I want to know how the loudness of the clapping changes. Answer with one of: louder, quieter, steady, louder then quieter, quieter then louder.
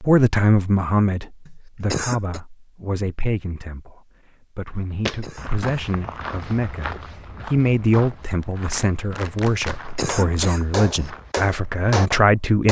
louder.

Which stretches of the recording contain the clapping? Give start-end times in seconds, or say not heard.
8.4-12.6.